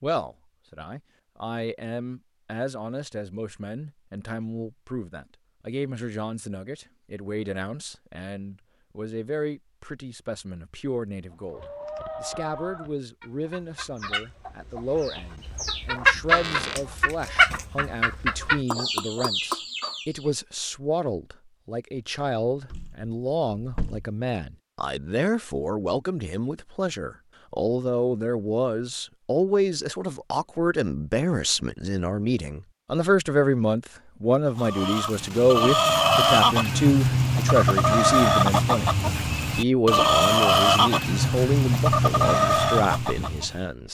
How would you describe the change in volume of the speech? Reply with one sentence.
The volume of the speech goes up.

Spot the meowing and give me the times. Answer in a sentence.
The meowing can't be heard in this clip.